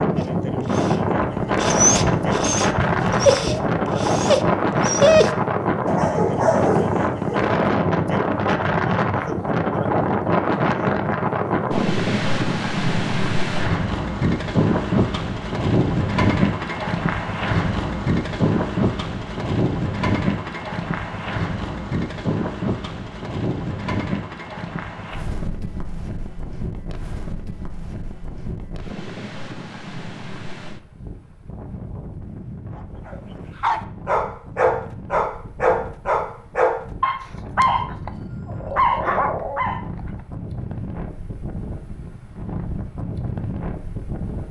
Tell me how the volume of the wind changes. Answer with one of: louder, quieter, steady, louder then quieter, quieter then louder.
quieter.